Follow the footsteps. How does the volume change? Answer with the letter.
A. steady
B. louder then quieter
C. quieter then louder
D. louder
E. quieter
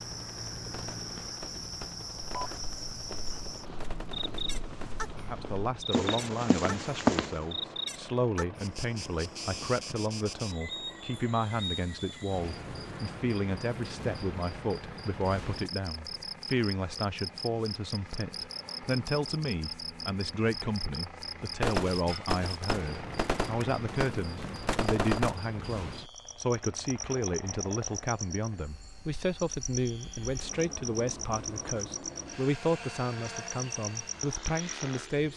D.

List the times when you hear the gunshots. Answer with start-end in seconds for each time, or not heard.
0.7-5.0, 21.6-25.4.